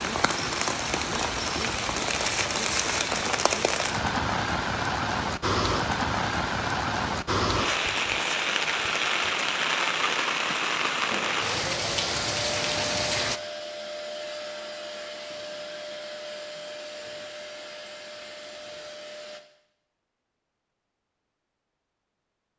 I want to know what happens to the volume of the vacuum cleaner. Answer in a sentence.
The loudness of the vacuum cleaner goes down.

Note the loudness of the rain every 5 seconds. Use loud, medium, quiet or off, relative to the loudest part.
loud, loud, loud, off, off.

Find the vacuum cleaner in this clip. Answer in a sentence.
The vacuum cleaner can be heard from 10.9 to 19.4 s.